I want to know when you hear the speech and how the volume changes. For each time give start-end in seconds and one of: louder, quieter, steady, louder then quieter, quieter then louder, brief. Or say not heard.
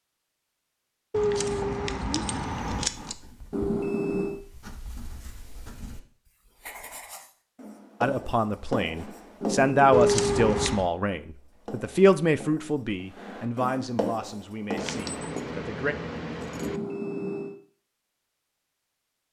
8.0-15.9 quieter.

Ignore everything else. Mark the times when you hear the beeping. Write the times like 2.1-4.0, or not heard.
3.5-4.4, 9.4-10.1, 16.6-17.6.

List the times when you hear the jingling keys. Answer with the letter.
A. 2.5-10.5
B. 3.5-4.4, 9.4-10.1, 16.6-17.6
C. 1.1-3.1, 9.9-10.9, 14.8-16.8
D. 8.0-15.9
C.